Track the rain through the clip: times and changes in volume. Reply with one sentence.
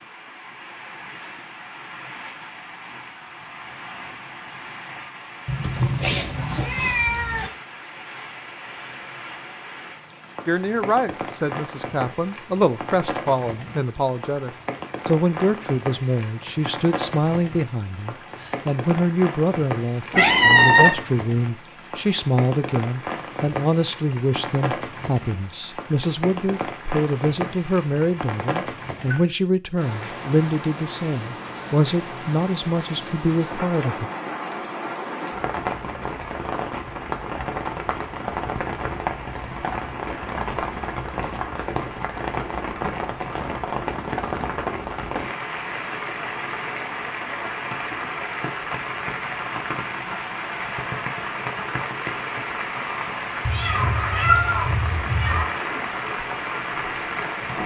You can hear the rain from 0.0 to 57.6 s, getting louder.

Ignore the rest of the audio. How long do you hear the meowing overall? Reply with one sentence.
The meowing can be heard for 5 seconds in total.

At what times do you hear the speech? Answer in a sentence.
You can hear the speech from 10.4 to 34.1 s.